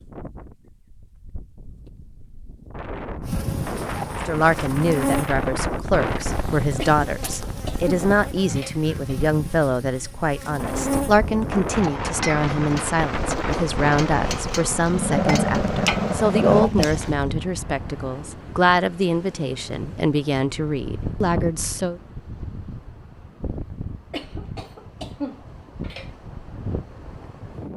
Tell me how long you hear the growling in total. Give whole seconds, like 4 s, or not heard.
2 s.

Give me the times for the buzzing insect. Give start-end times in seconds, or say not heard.
3.2-16.7.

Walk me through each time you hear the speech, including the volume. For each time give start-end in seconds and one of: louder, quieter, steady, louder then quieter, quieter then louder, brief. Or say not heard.
4.2-22.0 steady.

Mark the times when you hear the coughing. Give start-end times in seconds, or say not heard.
6.8-9.2, 24.1-26.1.